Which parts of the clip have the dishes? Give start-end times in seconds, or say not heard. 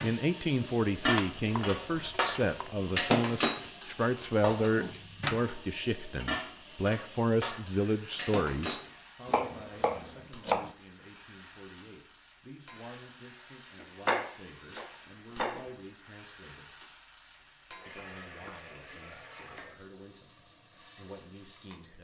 0.0-8.9.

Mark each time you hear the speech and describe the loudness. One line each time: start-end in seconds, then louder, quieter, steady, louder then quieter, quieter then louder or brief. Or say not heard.
0.0-16.7 quieter
17.9-21.9 quieter then louder.